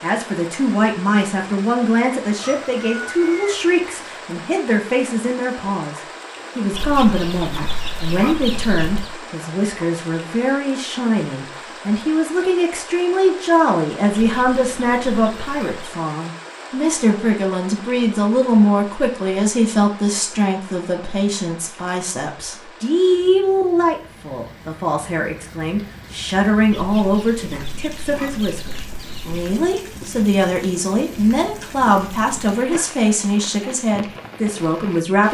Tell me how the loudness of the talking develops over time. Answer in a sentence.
The loudness of the talking stays about the same.